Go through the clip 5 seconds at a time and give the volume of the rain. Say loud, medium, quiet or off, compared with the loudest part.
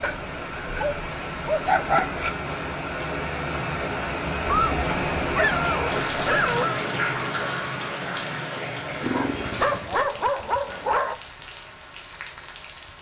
loud, loud, quiet.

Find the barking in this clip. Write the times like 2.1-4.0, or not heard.
0.0-2.4, 4.5-6.8, 9.0-11.2.